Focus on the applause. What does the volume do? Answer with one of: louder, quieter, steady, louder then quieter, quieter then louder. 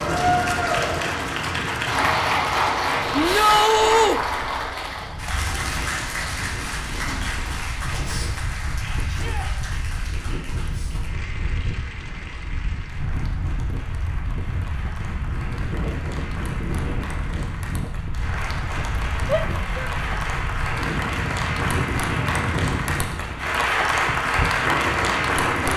quieter then louder.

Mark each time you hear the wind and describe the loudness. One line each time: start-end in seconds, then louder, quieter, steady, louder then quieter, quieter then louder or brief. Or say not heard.
0.0-25.7 louder.